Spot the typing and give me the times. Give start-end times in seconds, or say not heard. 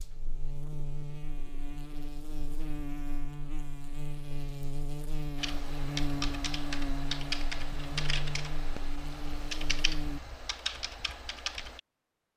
5.3-11.8.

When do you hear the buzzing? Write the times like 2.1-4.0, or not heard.
0.0-10.2.